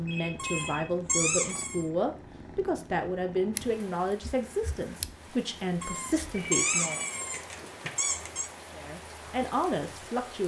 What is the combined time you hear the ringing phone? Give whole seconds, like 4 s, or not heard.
2 s.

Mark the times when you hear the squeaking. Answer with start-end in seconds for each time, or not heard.
0.3-1.9, 5.8-8.5.